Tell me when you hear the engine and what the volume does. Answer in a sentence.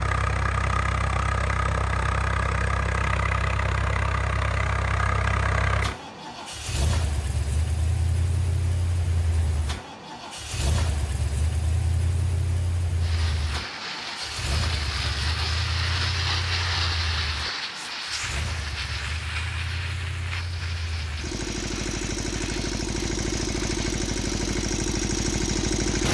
The engine can be heard from 0.0 to 26.1 s, getting quieter then louder.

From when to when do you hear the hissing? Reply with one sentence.
You can hear the hissing from 12.9 to 26.1 s.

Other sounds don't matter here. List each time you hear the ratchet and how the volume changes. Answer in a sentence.
You can't hear the ratchet here.